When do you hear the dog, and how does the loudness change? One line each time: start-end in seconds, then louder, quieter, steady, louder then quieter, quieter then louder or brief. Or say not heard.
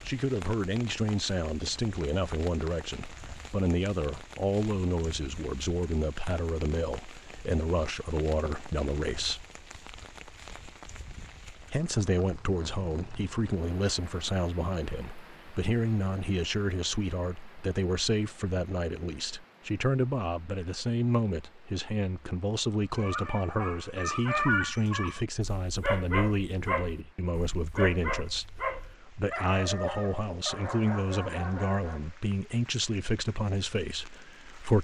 22.9-32.1 quieter.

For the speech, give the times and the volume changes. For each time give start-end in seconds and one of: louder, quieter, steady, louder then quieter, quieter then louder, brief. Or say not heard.
0.1-9.4 steady
11.7-34.7 steady.